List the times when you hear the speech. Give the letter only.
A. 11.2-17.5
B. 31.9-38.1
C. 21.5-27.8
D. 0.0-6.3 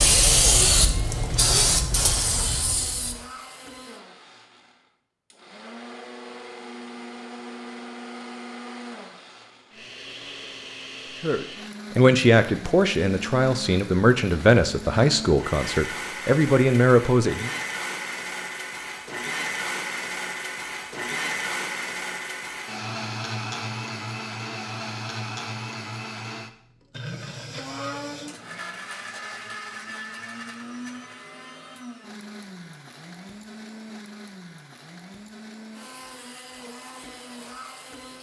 A.